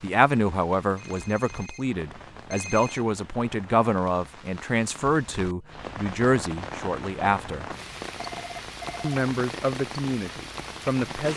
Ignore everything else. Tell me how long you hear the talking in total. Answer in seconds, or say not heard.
10 s.